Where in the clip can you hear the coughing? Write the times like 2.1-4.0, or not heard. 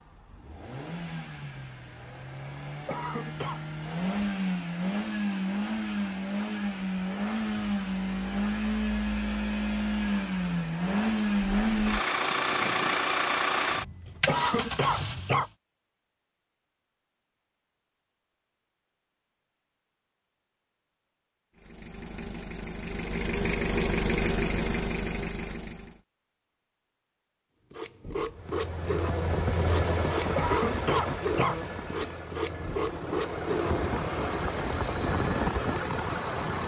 2.9-3.6, 14.2-15.5, 30.4-31.6.